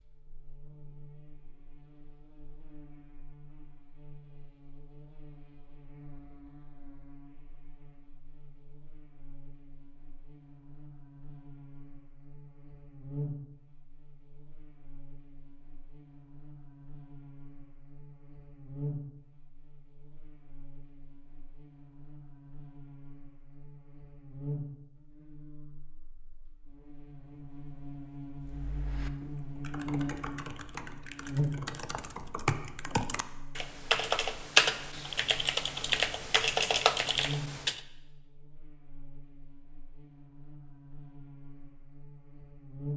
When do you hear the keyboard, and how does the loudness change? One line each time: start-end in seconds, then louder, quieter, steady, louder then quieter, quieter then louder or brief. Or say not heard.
28.4-37.8 louder.